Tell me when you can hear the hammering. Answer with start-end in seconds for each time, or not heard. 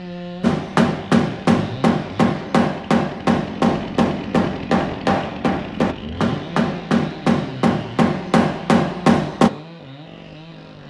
0.4-9.5.